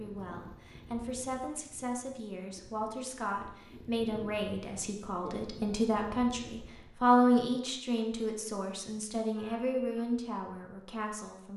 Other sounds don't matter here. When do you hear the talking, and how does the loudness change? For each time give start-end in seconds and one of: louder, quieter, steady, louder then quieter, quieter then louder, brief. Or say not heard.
0.0-11.5 louder then quieter.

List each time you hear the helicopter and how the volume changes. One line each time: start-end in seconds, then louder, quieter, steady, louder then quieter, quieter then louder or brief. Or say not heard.
not heard.